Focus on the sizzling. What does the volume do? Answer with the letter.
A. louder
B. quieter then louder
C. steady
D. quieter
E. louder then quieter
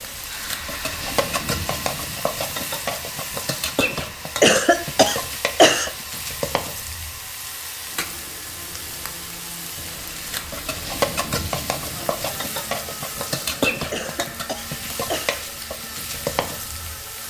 B.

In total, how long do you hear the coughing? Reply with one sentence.
You can hear the coughing for 3 seconds altogether.